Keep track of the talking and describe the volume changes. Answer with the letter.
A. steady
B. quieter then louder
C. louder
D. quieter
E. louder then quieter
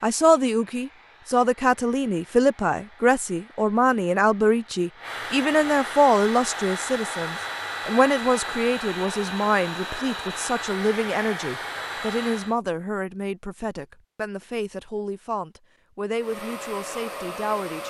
D.